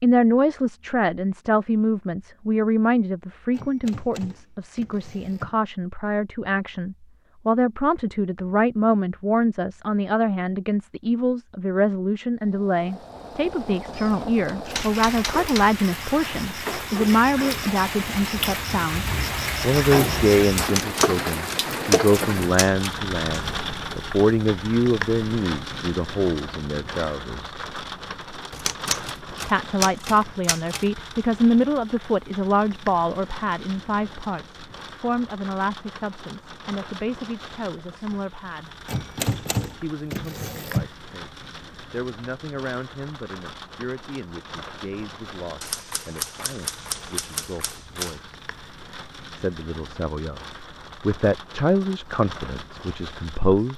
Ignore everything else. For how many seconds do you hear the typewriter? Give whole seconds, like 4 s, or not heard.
14 s.